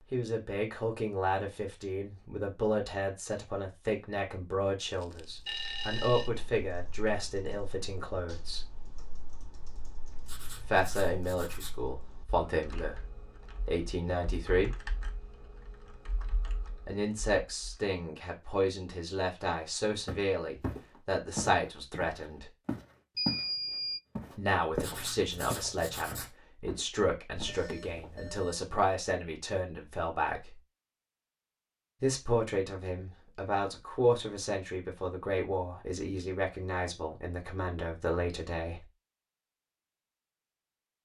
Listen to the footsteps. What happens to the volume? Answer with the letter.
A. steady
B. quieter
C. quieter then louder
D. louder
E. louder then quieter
B.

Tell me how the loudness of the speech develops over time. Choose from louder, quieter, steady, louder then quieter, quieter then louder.
steady.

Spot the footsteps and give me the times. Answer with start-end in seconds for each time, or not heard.
20.1-23.4, 24.1-28.3.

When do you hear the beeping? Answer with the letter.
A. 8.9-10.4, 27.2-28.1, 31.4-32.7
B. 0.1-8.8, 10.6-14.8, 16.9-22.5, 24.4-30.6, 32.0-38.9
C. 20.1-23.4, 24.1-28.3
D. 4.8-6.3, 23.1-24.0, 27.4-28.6
D.